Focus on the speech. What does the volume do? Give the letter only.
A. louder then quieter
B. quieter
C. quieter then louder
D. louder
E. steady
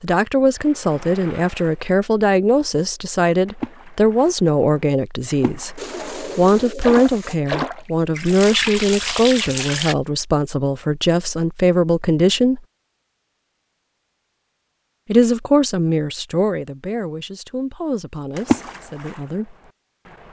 B.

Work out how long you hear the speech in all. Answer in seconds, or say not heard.
17 s.